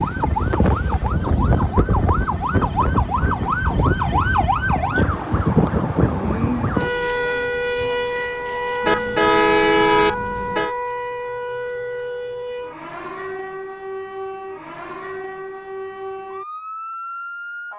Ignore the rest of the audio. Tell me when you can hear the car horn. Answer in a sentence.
You can hear the car horn from 8.8 to 10.7 s.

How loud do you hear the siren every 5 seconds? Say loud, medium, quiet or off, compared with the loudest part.
loud, loud, medium, medium.